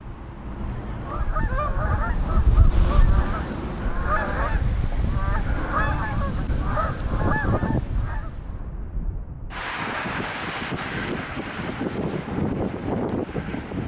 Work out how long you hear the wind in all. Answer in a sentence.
The wind can be heard for 14 seconds in total.